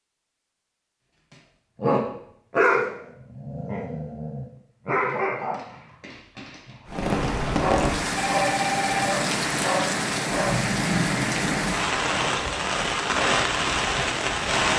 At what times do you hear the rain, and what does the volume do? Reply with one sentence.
You can hear the rain from 6.8 to 14.7 s, at a steady volume.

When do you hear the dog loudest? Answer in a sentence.
The volume of the dog peaks at 3 seconds.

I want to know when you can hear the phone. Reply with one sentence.
You can hear the phone from 8.2 to 9.2 s.